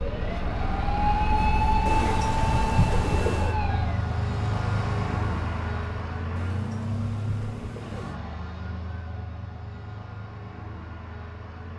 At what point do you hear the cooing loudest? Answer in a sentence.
The volume of the cooing peaks at 3 seconds.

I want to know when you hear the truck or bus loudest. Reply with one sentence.
The volume of the truck or bus peaks at 5 seconds.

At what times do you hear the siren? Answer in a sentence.
You can hear the siren from 0.0 to 4.0 s.